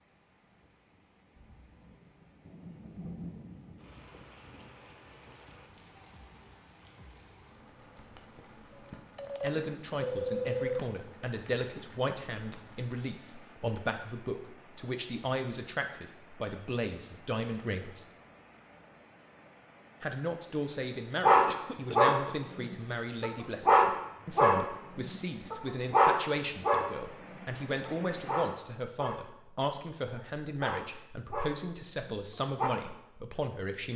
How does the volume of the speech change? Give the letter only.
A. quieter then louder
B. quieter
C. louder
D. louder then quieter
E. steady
E.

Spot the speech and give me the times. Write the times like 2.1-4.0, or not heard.
9.4-18.1, 20.0-33.9.